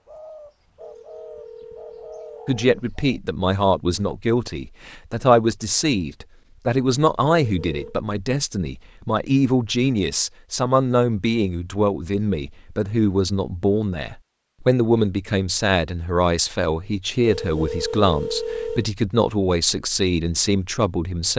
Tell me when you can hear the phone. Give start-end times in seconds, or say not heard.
0.8-2.9, 7.5-8.0, 17.2-18.9.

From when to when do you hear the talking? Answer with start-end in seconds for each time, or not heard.
2.5-21.3.